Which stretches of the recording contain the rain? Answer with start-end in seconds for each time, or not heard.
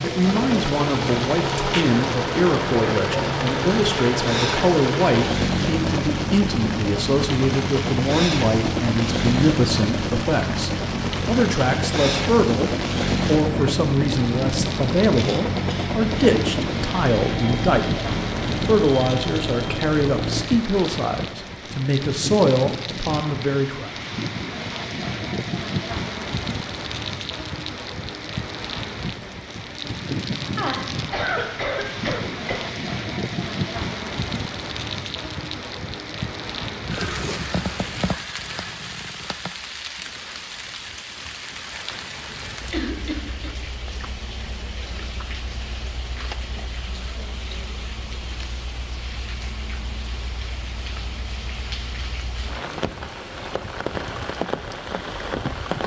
0.0-55.8.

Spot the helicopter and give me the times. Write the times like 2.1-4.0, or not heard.
0.0-20.4.